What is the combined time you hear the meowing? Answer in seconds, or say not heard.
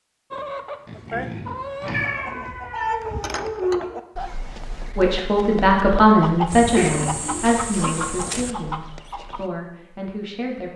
3 s.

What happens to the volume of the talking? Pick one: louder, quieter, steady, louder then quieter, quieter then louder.
quieter.